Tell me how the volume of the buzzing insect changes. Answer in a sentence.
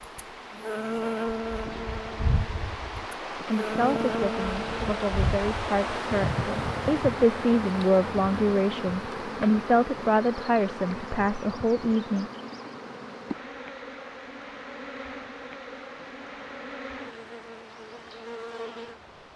The volume of the buzzing insect goes down.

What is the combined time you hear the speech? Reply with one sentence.
You can hear the speech for 9 seconds altogether.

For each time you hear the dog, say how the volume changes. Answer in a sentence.
The dog can't be heard in this clip.